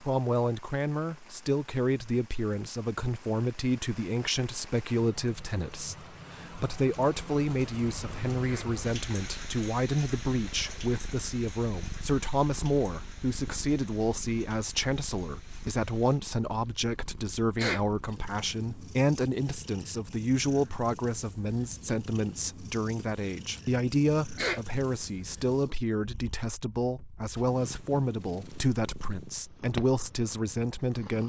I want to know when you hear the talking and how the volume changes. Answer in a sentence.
You can hear the talking from 0.0 to 31.2 s, at a steady volume.